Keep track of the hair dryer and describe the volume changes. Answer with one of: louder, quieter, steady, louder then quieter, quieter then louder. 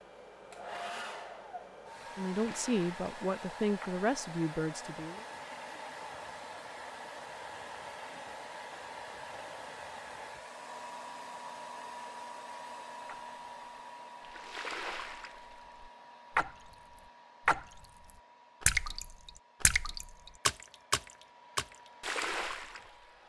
quieter.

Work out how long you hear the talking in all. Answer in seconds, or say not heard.
3 s.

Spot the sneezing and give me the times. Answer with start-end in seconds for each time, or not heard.
not heard.